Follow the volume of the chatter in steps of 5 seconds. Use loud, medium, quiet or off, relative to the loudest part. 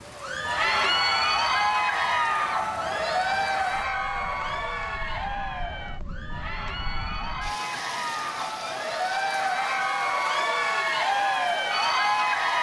loud, medium, loud.